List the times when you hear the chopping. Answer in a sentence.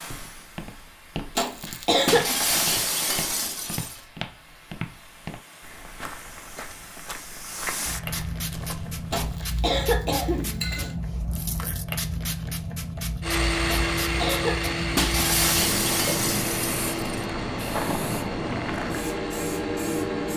You can't hear the chopping here.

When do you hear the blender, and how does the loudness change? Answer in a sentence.
You can hear the blender from 13.2 to 20.3 s, getting quieter.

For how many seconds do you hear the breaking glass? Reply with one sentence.
The breaking glass can be heard for 4 seconds in total.